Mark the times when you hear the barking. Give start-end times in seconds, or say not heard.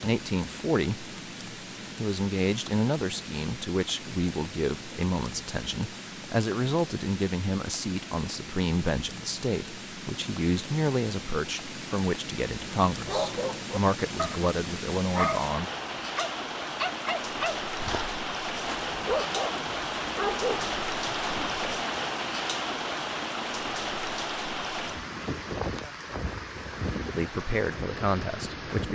12.9-21.5.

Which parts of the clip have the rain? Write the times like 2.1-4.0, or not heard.
0.0-28.9.